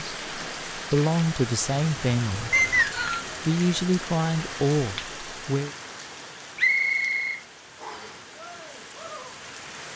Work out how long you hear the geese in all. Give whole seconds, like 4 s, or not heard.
not heard.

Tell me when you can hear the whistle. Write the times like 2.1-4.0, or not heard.
2.5-3.2, 6.5-8.2.